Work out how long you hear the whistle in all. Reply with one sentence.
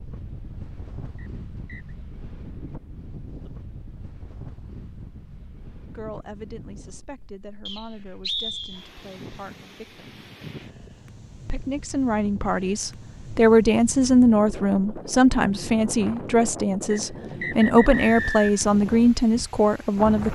You can hear the whistle for 4 seconds altogether.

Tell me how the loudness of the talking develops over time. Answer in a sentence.
The loudness of the talking goes up.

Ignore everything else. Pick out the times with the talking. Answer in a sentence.
You can hear the talking from 5.9 to 10.2 s and from 11.4 to 20.3 s.